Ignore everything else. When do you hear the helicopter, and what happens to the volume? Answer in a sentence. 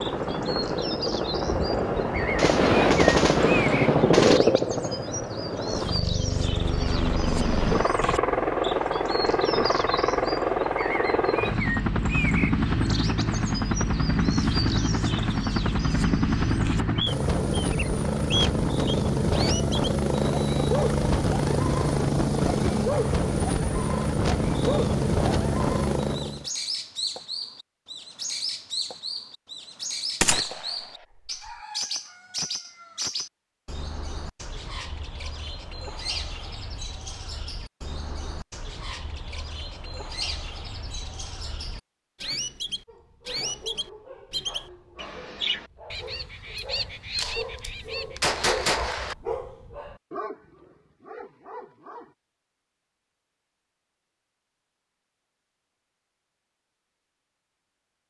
You can hear the helicopter from 0.0 to 26.4 s, at a steady volume.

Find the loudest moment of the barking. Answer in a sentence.
The volume of the barking peaks at 49 seconds.